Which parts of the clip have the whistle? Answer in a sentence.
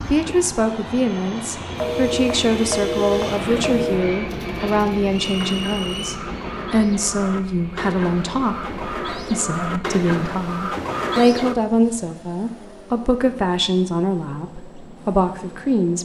The whistle can be heard from 5.1 to 6.2 s.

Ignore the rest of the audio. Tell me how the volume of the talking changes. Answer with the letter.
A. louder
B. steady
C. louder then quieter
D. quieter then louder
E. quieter
B.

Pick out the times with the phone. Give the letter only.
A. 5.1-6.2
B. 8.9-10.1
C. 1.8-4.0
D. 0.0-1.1
C.